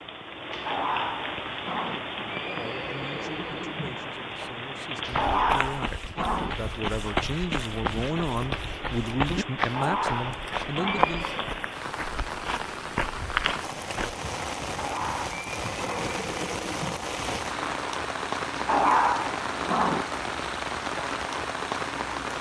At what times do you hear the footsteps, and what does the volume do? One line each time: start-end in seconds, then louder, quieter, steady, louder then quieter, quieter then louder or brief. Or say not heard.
5.0-14.2 steady.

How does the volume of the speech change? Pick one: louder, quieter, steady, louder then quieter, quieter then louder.
louder.